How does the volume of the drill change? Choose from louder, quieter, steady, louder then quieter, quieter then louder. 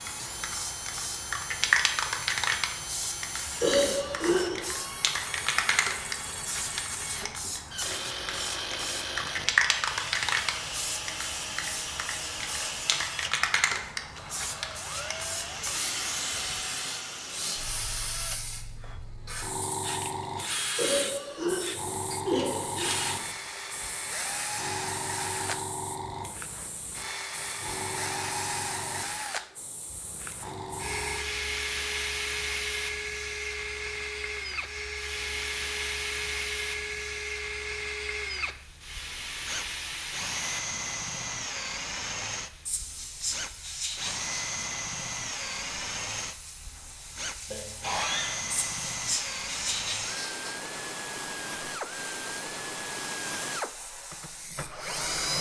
steady.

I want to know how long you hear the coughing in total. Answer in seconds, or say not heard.
4 s.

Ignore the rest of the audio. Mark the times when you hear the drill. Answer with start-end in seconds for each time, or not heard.
0.0-55.3.